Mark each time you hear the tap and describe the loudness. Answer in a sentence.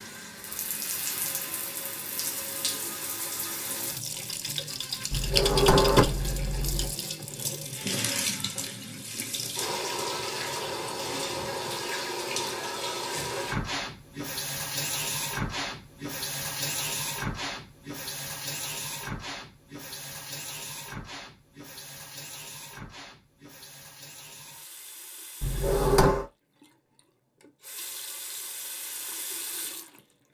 The tap can be heard from 0.0 to 30.0 s, getting quieter.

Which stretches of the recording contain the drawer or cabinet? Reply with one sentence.
You can hear the drawer or cabinet from 5.1 to 7.0 s and from 25.4 to 26.2 s.